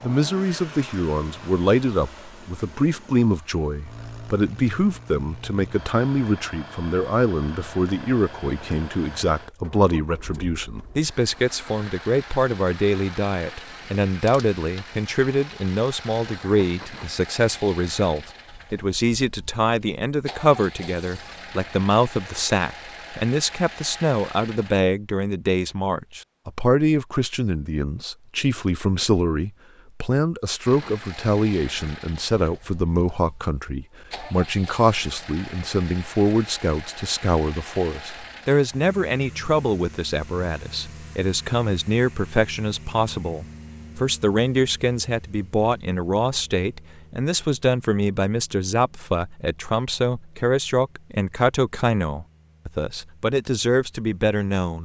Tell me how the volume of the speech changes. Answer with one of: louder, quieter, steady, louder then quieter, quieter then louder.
steady.